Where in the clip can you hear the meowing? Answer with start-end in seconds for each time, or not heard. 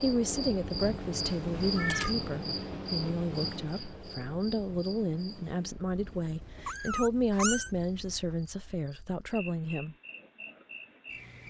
1.2-2.1, 6.7-7.7.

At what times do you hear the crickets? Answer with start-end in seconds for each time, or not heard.
0.0-11.4.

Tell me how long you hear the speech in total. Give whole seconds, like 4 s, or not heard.
10 s.